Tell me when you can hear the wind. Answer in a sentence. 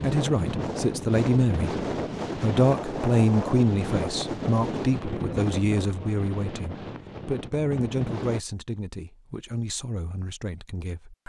The wind can be heard from 0.0 to 8.4 s.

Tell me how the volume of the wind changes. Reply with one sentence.
The volume of the wind goes down.